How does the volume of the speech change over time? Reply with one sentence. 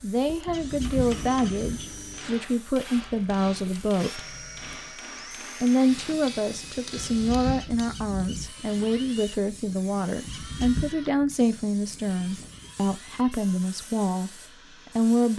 The volume of the speech stays about the same.